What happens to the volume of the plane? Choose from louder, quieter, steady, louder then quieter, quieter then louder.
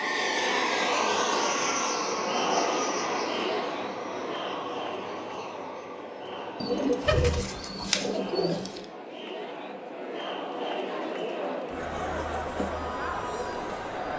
quieter.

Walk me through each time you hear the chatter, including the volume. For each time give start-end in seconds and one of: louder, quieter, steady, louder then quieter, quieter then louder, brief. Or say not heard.
0.0-14.1 quieter then louder.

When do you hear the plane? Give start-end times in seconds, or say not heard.
0.0-8.8.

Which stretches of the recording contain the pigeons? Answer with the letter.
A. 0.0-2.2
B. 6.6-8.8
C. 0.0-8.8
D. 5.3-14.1
B.